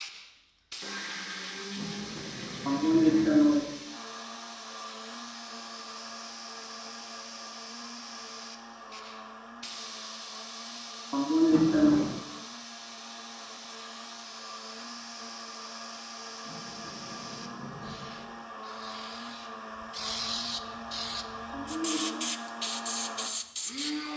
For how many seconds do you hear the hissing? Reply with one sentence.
The hissing can be heard for 24 seconds in total.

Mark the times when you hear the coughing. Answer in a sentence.
The coughing can be heard from 2.6 to 3.6 s, from 11.1 to 11.9 s and from 21.5 to 22.2 s.